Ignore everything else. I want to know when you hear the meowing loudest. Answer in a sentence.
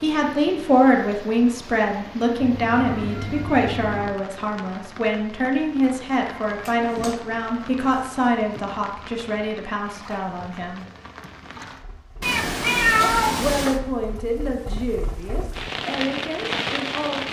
The loudest moment of the meowing is at 13 seconds.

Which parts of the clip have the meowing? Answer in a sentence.
You can hear the meowing from 2.4 to 4.2 s, from 6.4 to 8.6 s and from 12.2 to 13.8 s.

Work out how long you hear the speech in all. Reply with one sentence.
The speech can be heard for 15 seconds in total.